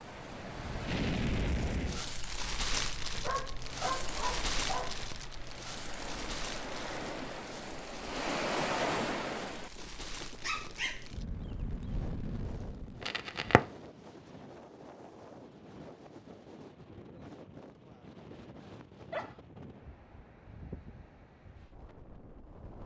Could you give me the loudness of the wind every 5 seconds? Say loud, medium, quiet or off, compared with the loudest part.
medium, loud, quiet, quiet, quiet.